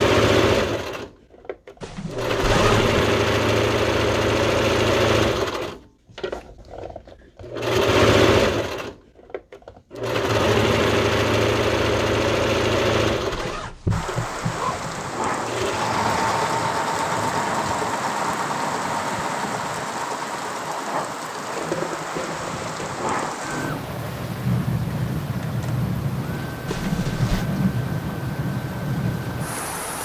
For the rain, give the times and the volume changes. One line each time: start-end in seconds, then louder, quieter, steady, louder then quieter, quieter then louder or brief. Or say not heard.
13.9-30.0 steady.